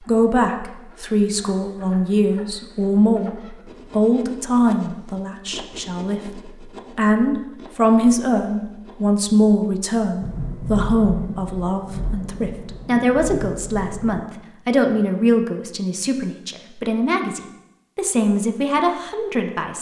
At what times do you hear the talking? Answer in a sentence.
The talking can be heard from 0.1 to 19.7 s.